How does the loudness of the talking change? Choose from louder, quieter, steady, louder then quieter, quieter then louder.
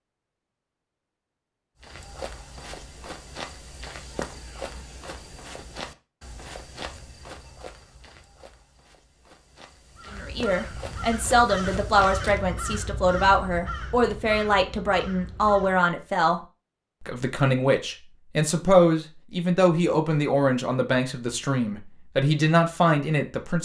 steady.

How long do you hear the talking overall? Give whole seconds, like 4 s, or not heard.
13 s.